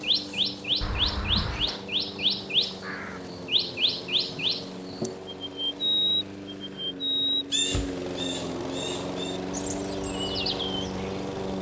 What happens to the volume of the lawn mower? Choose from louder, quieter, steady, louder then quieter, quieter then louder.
louder.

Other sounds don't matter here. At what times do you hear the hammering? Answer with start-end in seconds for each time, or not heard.
not heard.